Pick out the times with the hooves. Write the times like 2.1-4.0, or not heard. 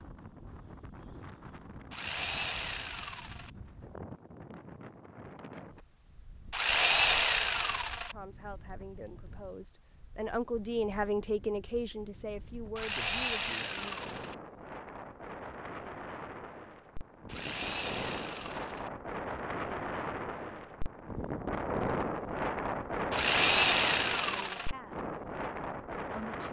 not heard.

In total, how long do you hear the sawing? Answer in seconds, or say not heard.
8 s.